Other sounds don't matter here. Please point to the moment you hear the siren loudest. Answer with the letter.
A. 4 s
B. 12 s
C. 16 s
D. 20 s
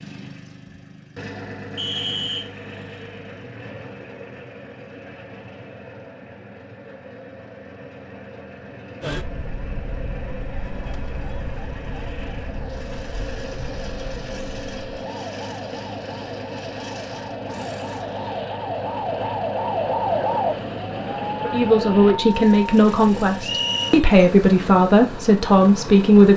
D.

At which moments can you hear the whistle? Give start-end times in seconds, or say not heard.
1.8-2.5, 23.4-24.0.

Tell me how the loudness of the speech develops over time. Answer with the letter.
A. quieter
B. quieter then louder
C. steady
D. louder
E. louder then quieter
C.